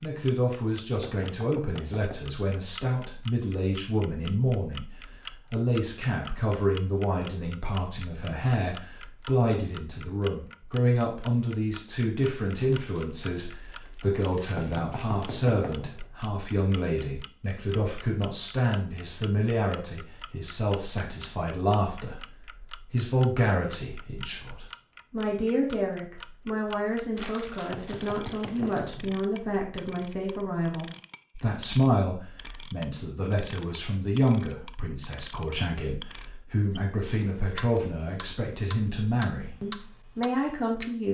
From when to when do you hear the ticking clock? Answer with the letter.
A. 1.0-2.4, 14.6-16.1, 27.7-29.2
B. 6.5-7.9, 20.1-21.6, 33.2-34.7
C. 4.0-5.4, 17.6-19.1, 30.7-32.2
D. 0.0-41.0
D.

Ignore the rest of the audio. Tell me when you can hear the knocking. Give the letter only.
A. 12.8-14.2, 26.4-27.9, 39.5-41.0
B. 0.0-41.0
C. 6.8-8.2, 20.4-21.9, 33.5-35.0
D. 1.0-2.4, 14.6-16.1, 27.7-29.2
D.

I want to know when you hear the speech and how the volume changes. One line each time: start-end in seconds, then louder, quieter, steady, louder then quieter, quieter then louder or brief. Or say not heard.
0.0-41.0 steady.